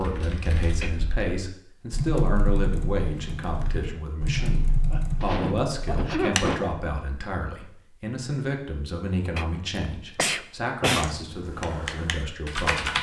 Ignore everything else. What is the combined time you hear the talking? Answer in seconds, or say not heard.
13 s.